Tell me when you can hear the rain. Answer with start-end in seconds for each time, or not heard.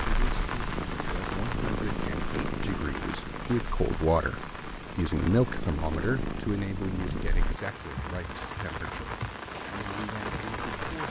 0.0-11.0.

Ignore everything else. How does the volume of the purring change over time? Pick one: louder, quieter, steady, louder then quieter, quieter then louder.
quieter then louder.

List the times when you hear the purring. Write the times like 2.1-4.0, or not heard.
0.1-7.6.